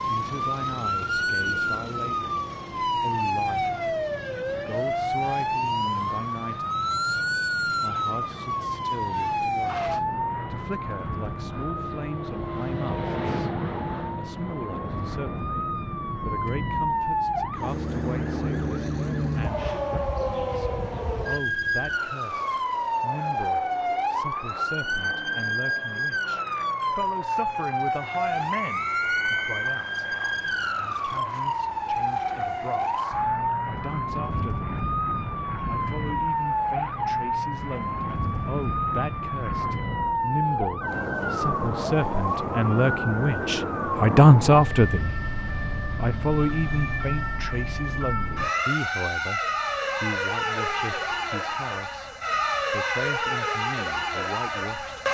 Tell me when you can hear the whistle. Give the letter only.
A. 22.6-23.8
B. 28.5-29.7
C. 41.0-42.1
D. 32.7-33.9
B.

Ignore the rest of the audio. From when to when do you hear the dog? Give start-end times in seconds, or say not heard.
not heard.